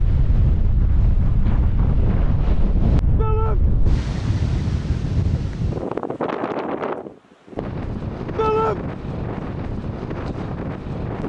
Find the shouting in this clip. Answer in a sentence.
The shouting can be heard from 3.1 to 3.6 s and from 8.3 to 8.8 s.